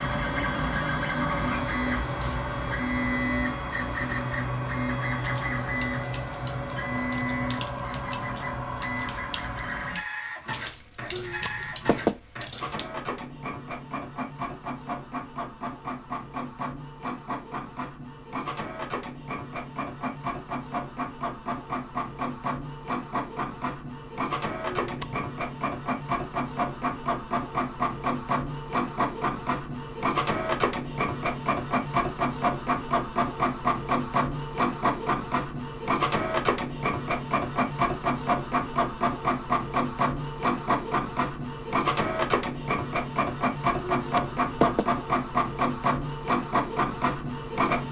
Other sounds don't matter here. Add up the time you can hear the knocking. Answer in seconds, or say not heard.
3 s.